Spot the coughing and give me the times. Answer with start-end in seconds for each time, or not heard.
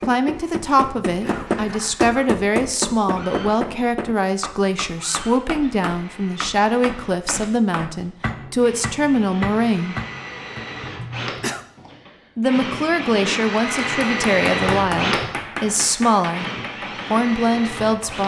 0.8-2.3, 10.9-11.7.